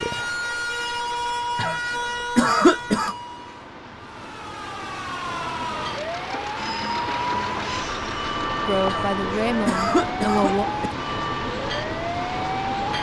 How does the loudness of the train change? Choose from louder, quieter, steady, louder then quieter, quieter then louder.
louder.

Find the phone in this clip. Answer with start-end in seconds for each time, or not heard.
not heard.